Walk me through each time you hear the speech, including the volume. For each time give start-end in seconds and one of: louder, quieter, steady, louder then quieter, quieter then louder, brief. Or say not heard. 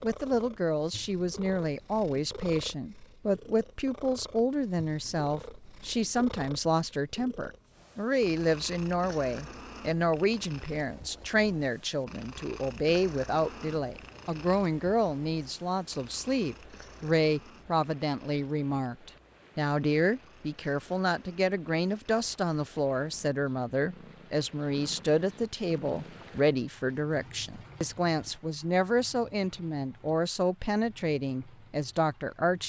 0.0-32.6 steady.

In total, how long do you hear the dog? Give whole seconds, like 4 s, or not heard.
not heard.